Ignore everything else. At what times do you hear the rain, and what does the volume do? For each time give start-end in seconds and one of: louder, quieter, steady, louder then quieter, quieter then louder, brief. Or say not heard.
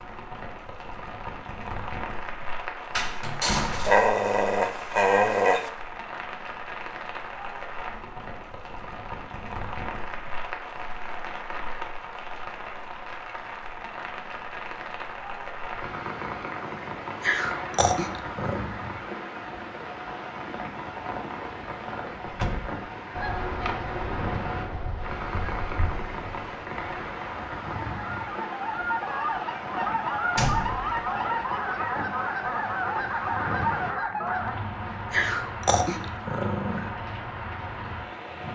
0.0-38.4 steady.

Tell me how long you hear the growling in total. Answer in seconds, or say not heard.
5 s.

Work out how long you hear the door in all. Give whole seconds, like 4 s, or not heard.
2 s.